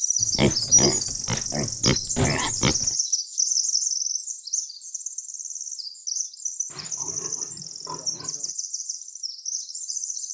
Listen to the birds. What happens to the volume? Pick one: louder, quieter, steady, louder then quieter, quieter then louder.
quieter.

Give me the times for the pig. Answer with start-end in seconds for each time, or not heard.
0.2-3.0, 6.7-8.5.